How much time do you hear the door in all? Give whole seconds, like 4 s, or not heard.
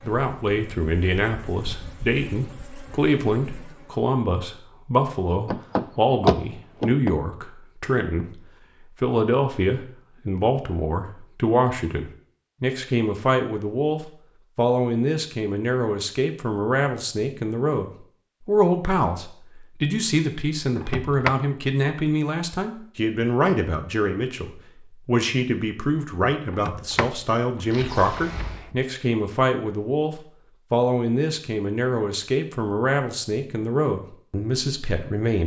5 s.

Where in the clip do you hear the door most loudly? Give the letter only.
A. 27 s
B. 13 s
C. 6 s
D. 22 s
C.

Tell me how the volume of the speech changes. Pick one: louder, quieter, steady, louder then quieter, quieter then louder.
steady.